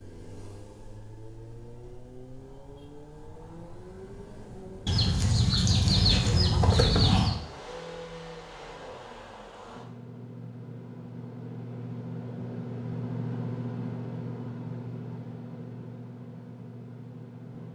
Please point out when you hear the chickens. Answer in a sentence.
The chickens can be heard from 4.8 to 7.3 s.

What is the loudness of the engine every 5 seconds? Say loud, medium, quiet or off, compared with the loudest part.
medium, medium, loud, medium.